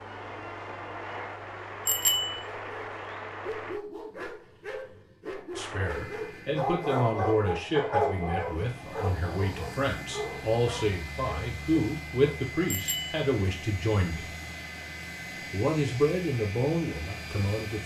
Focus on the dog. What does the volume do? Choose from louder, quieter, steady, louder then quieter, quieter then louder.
louder then quieter.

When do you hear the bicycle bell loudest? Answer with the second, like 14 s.
2 s.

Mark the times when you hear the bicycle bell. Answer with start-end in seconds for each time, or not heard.
1.9-2.4, 12.7-13.2.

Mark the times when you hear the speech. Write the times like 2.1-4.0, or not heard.
5.5-14.3, 15.5-17.8.